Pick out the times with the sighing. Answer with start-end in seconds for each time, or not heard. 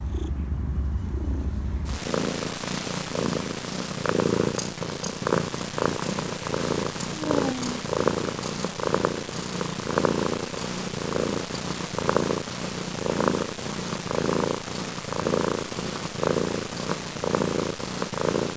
7.1-7.8.